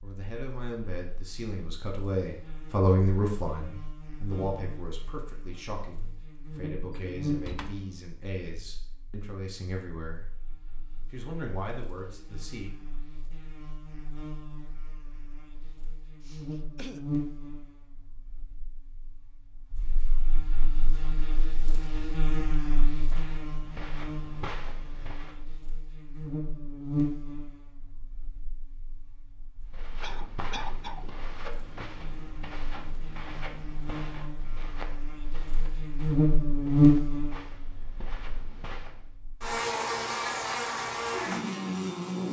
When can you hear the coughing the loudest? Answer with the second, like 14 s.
31 s.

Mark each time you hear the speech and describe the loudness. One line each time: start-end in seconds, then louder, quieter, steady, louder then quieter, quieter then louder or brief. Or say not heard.
0.0-10.2 louder then quieter
11.1-12.7 brief.